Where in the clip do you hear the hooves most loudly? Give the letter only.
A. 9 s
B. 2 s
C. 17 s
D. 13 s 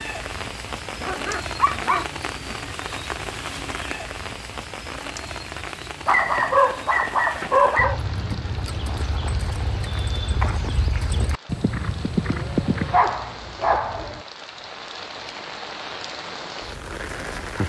D.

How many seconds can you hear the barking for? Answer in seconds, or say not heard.
5 s.